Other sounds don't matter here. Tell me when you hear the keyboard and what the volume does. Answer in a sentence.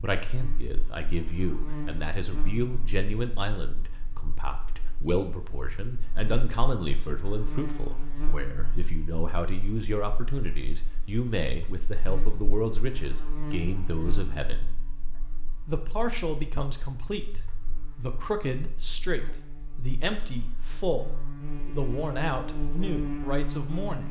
The keyboard can't be heard in this clip.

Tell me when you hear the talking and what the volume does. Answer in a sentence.
You can hear the talking from 0.0 to 14.7 s, at a steady volume; and from 15.7 to 24.0 s, at a steady volume.